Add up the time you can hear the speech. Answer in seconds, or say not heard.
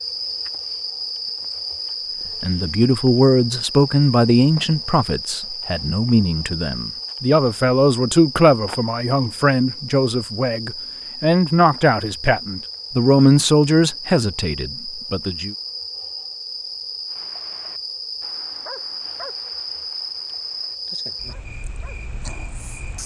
13 s.